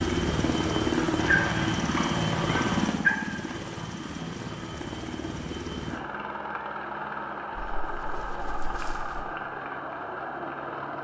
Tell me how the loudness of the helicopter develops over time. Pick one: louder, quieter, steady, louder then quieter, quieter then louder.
quieter.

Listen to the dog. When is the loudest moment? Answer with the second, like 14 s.
3 s.